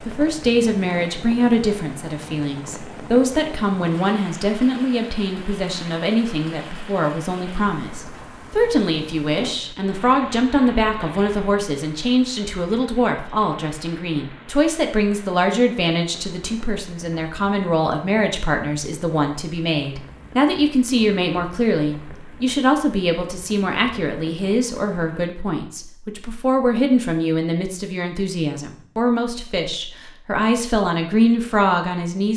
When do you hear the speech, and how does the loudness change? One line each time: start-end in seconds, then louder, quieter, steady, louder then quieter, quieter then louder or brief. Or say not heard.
0.0-32.3 steady.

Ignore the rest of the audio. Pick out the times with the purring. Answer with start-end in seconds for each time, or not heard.
not heard.